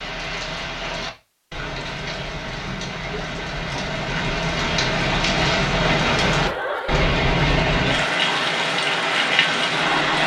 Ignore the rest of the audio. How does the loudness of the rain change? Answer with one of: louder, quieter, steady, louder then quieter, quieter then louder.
louder.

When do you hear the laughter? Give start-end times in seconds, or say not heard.
5.9-7.2.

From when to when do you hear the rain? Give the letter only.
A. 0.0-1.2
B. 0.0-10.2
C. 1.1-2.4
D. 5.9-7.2
B.